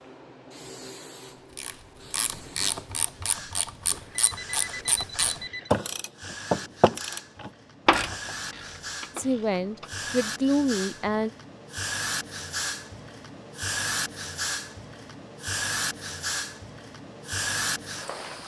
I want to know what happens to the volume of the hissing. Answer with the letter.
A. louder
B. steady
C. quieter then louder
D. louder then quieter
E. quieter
A.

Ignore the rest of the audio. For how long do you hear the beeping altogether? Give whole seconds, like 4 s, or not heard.
2 s.